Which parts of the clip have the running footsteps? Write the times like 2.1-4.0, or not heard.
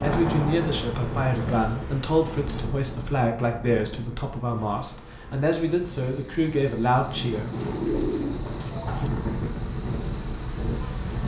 not heard.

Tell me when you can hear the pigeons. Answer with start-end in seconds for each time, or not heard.
7.5-9.1.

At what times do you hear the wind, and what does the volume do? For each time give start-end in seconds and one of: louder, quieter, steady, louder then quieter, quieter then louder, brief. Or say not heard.
0.0-11.2 quieter then louder.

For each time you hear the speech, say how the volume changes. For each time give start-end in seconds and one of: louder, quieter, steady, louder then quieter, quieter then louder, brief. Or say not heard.
0.0-8.1 steady.